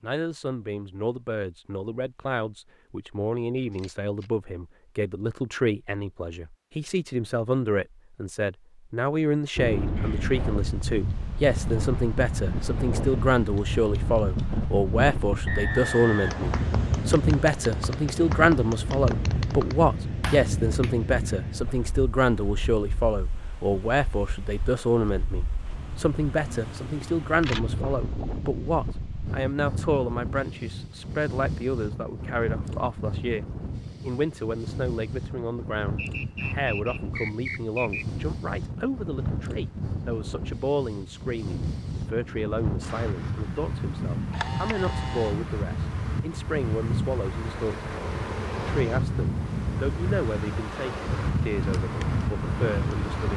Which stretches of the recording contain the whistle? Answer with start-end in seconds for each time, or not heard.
15.4-16.6, 36.0-38.0.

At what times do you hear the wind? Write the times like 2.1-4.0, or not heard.
9.6-53.3.